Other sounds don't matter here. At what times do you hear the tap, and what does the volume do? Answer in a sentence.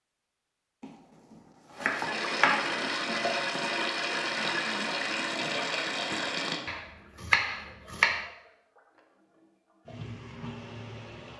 The tap can be heard from 1.8 to 11.3 s, getting quieter then louder.